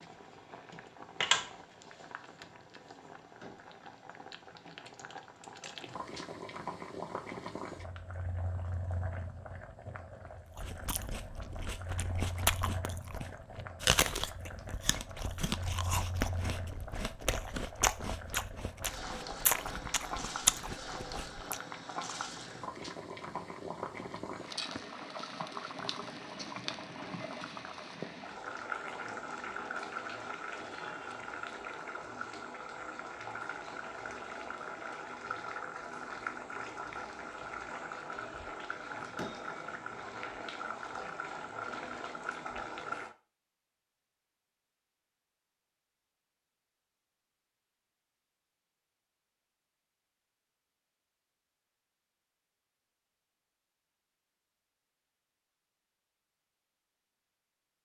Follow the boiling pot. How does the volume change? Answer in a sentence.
The volume of the boiling pot goes down, then up.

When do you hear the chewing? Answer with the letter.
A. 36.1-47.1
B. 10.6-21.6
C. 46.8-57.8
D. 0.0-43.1
B.